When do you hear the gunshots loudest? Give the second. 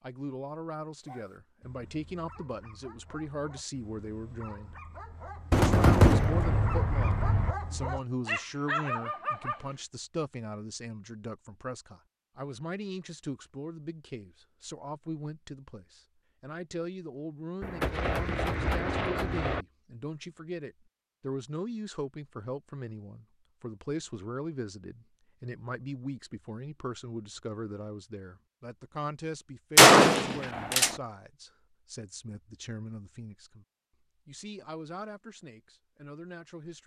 30 s.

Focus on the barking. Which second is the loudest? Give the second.
9 s.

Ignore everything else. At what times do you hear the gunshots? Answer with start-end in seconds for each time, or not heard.
5.5-7.5, 17.6-19.6, 29.8-30.9.